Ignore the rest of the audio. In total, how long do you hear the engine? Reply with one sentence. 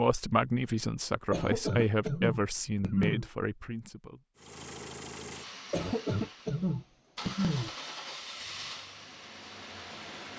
The engine can be heard for 6 seconds in total.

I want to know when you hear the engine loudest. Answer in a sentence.
The volume of the engine peaks at 8 seconds.